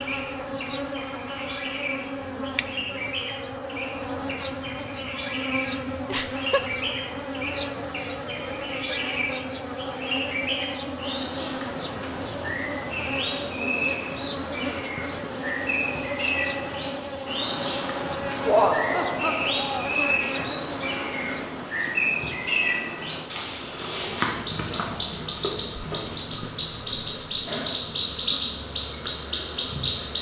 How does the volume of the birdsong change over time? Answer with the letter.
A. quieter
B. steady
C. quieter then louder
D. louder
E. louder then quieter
D.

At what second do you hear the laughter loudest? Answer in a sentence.
The volume of the laughter peaks at 19 seconds.